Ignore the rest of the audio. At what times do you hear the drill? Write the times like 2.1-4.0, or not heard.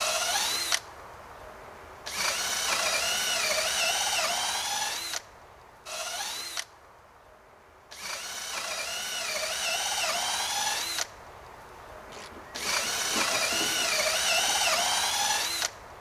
0.0-15.9.